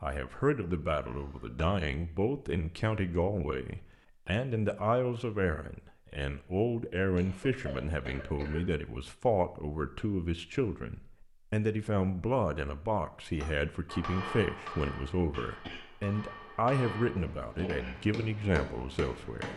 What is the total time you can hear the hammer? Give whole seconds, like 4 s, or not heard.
6 s.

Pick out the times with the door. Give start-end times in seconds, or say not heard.
not heard.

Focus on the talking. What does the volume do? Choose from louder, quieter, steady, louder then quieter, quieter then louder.
steady.